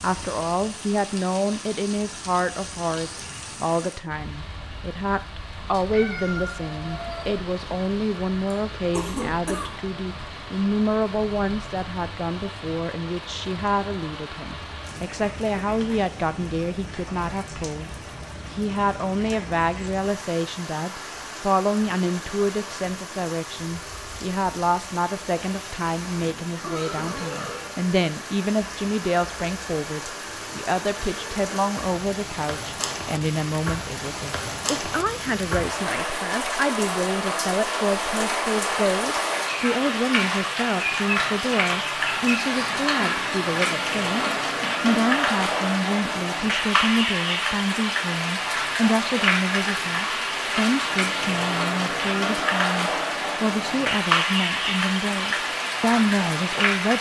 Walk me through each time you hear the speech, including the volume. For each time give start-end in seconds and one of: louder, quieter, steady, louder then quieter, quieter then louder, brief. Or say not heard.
0.0-56.9 steady.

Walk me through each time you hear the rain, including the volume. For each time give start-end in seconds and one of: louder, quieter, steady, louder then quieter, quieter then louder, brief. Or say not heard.
0.0-56.9 louder.